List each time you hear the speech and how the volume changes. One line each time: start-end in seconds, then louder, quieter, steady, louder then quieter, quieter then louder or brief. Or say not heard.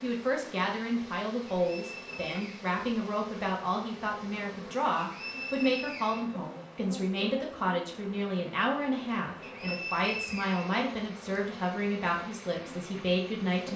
0.0-13.7 steady.